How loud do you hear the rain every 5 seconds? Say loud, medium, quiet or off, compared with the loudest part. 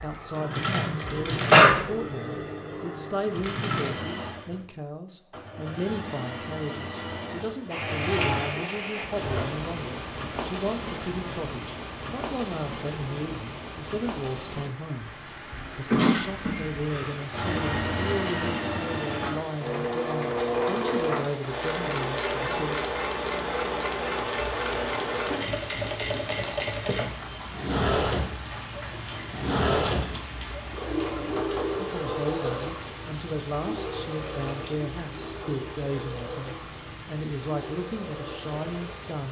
off, loud, loud, medium, medium, medium, medium, medium.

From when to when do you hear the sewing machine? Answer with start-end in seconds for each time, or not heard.
0.0-9.5, 17.3-39.2.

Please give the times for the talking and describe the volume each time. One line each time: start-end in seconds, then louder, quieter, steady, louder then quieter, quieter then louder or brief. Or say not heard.
0.0-22.8 steady
31.8-39.2 steady.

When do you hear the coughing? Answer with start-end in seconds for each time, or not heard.
1.4-1.8, 15.5-17.1, 29.8-30.2.